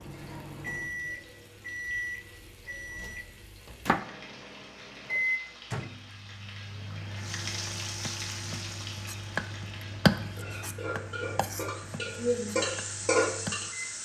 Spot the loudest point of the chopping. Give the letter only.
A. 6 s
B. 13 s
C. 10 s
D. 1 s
C.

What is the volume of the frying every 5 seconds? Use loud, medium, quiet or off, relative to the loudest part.
quiet, medium, loud.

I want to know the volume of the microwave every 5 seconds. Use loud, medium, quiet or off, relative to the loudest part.
loud, loud, medium.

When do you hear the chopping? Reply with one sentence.
You can hear the chopping from 8.1 to 13.9 s.